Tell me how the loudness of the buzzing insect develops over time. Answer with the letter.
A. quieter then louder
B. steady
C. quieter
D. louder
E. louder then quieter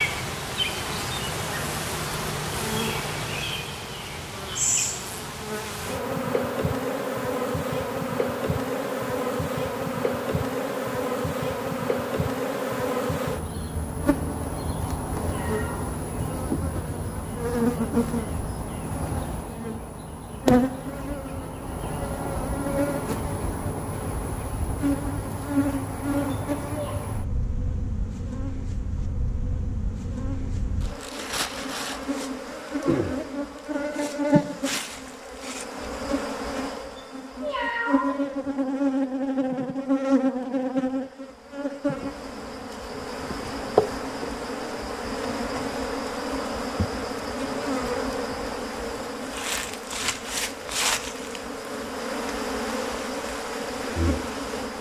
B.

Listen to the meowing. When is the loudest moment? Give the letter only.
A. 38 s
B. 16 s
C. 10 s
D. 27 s
A.